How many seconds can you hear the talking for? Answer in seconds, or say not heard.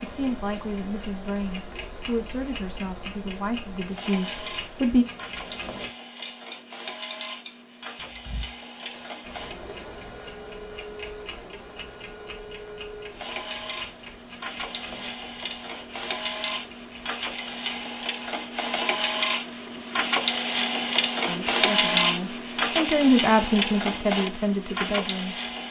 9 s.